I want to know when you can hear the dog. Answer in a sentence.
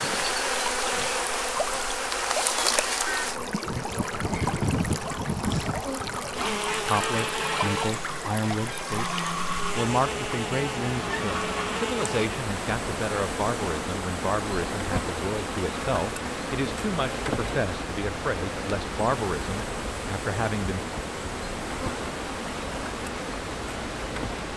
You can't hear the dog here.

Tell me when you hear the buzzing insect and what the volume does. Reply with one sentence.
You can hear the buzzing insect from 0.0 to 24.5 s, getting quieter.